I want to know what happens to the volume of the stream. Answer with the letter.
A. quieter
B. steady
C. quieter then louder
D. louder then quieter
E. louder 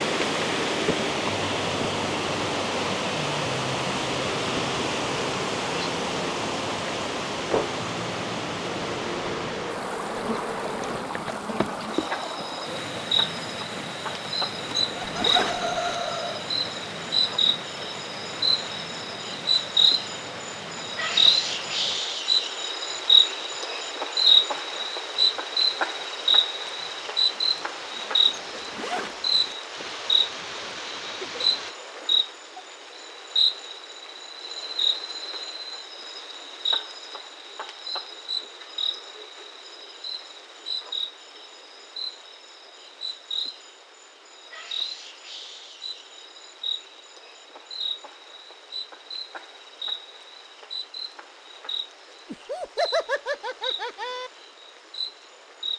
A.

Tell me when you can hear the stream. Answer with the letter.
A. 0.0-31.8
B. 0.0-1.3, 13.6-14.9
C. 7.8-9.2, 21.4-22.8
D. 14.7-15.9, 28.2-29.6
A.